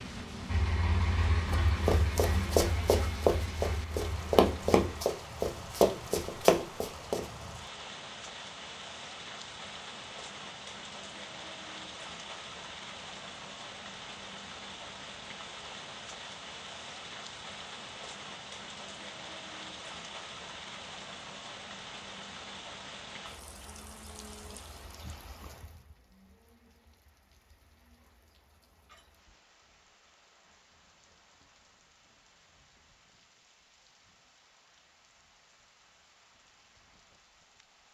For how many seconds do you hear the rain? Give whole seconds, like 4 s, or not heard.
38 s.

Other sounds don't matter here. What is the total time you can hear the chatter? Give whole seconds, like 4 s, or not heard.
not heard.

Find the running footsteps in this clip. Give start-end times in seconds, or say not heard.
1.5-7.2.